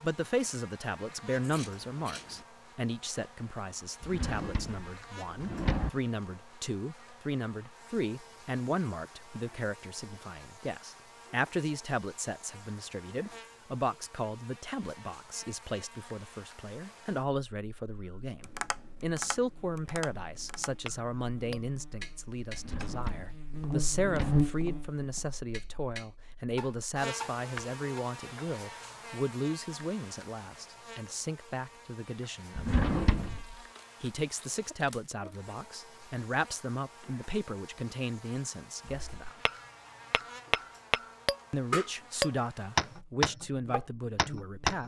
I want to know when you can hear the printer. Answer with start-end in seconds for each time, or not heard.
not heard.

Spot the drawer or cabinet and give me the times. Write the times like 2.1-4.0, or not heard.
4.0-5.9, 22.5-24.4, 32.5-33.5.